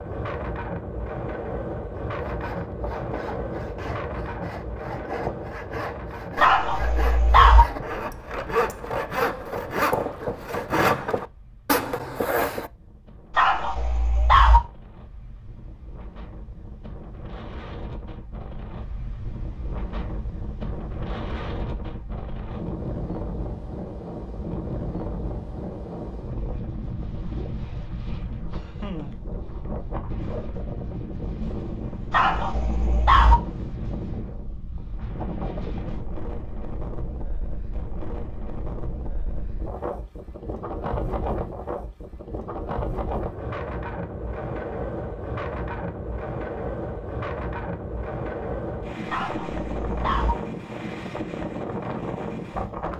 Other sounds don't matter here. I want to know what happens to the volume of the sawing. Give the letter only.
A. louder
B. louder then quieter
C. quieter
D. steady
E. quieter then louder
A.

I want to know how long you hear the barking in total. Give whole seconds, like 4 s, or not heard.
5 s.